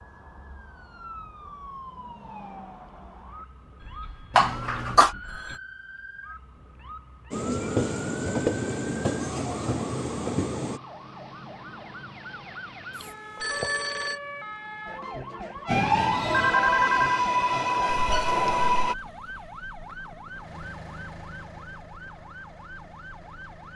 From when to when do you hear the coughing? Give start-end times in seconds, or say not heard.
4.3-5.1, 12.9-13.7, 17.9-18.7.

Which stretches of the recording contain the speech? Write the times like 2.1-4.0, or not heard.
not heard.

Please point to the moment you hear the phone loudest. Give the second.
17 s.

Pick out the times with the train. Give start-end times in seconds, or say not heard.
7.3-10.8, 15.7-18.9.